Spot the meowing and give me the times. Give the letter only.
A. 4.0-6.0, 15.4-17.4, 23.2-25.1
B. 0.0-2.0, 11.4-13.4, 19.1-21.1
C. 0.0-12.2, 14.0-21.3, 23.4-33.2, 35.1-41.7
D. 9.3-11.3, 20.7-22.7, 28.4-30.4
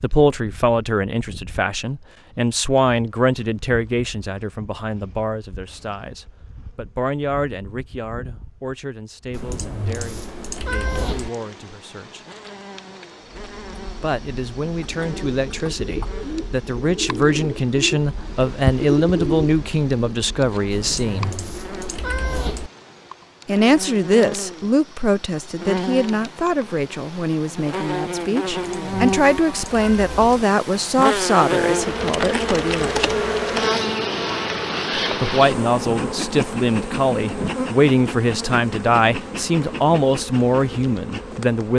D.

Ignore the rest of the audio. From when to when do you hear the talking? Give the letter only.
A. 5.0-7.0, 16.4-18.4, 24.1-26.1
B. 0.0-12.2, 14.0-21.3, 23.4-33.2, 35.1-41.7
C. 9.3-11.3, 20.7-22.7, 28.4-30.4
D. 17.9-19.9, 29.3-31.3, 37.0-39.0
B.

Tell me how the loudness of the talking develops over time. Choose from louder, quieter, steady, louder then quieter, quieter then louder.
quieter then louder.